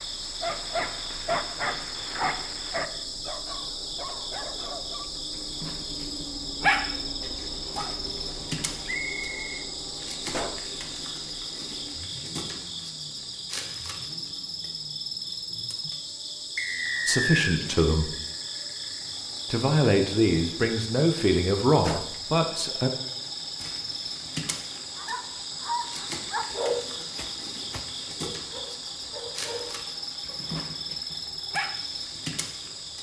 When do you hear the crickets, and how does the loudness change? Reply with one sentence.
You can hear the crickets from 0.0 to 32.9 s, at a steady volume.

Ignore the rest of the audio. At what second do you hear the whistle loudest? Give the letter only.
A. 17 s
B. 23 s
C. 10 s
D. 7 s
A.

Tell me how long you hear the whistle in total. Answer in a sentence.
You can hear the whistle for 2 seconds altogether.